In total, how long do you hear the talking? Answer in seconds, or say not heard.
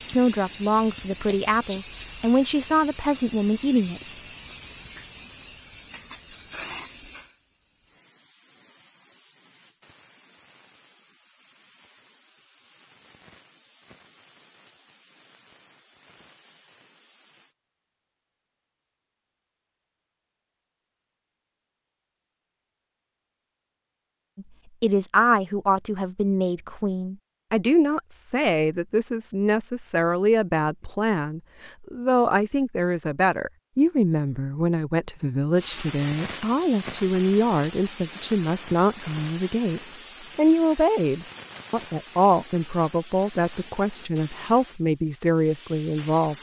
26 s.